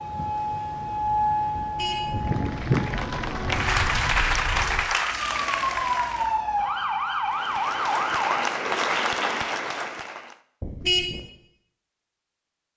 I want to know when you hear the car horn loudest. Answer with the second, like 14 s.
11 s.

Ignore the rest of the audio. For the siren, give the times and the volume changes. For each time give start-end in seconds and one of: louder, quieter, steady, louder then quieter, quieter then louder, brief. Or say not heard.
0.0-8.5 quieter then louder.